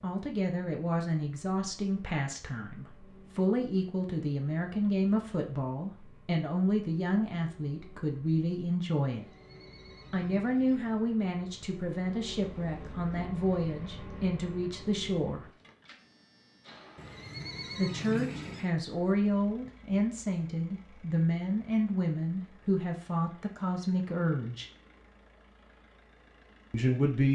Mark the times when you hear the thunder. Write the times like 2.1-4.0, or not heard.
not heard.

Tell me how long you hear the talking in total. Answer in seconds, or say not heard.
22 s.